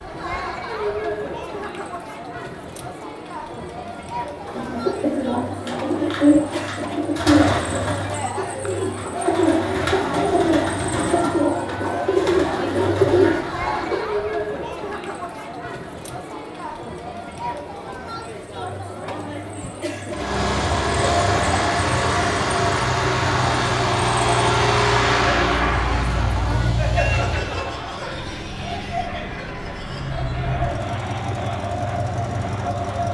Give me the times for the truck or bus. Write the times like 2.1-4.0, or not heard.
20.1-33.0.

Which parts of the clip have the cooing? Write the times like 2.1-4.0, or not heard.
4.5-14.0.